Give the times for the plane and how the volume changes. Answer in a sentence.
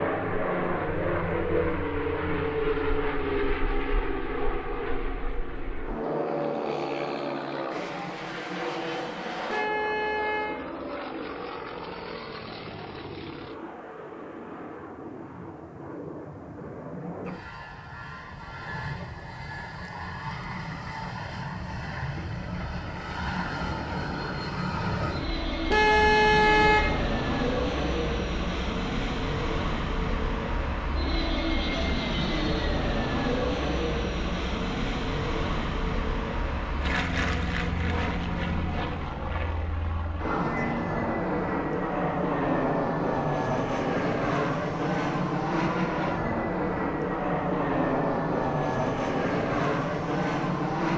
The plane can be heard from 0.0 to 50.9 s, getting quieter then louder.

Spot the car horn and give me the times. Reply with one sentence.
The car horn can be heard from 9.4 to 10.6 s and from 25.7 to 27.0 s.